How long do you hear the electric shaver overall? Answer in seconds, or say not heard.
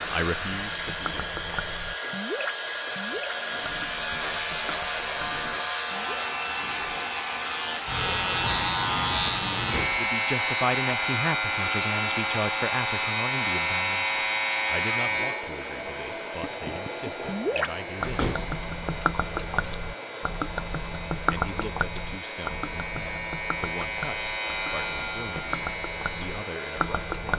27 s.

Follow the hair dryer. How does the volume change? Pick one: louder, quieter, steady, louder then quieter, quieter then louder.
quieter.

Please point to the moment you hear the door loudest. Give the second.
18 s.